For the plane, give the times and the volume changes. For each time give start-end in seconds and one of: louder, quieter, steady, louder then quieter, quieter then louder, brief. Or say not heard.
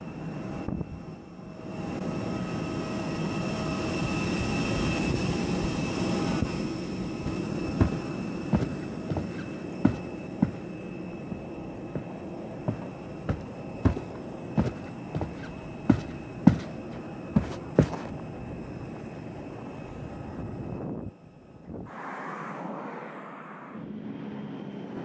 0.0-25.0 quieter.